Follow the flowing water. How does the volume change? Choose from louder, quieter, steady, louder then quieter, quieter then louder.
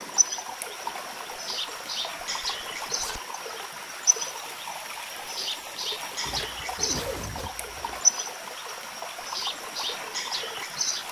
steady.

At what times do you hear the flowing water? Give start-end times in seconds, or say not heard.
0.0-11.0.